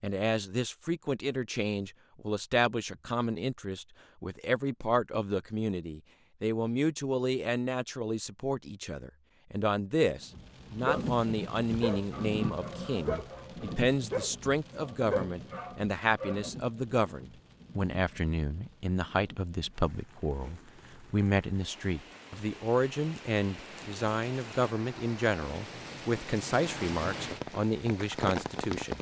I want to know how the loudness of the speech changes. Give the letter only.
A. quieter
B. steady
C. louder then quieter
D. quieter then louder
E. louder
B.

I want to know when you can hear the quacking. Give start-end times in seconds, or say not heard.
not heard.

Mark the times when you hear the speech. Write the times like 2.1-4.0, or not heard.
0.0-28.9.